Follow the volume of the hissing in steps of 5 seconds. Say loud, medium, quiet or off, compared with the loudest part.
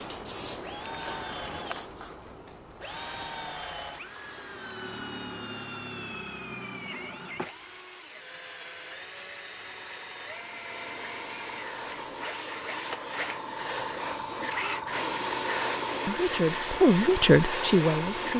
medium, quiet, medium, loud.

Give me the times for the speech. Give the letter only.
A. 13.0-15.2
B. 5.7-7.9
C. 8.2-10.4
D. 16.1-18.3
D.